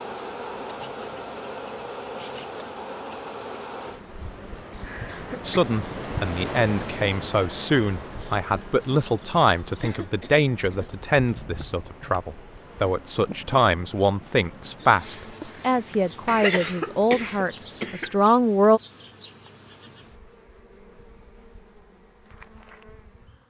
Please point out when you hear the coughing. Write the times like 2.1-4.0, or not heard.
4.8-5.7, 9.8-10.9, 16.2-18.3.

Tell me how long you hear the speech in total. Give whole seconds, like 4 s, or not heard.
13 s.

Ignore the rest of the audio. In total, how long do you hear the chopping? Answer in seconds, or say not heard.
not heard.